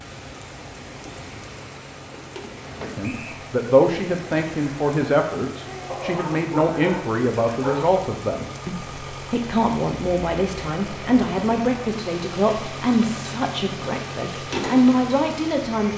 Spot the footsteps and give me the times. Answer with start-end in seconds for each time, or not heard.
not heard.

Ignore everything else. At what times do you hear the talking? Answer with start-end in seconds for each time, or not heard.
2.8-15.9.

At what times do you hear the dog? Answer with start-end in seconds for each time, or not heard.
5.8-7.9.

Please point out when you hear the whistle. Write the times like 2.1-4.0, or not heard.
3.0-3.5.